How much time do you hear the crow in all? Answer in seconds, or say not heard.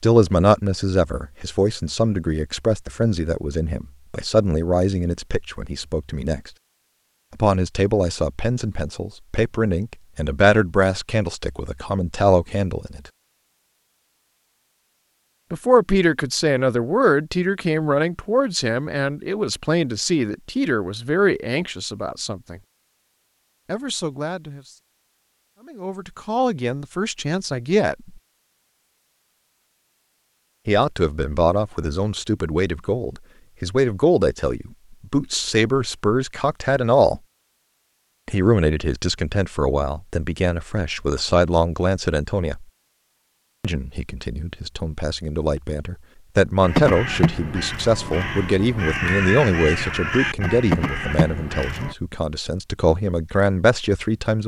5 s.